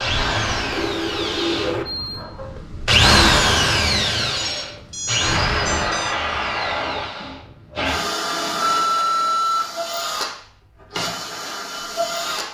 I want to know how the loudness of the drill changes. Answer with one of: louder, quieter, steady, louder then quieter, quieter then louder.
louder then quieter.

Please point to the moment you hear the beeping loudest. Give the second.
9 s.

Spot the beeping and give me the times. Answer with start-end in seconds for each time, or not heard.
0.7-2.2, 4.3-6.2, 8.6-9.7.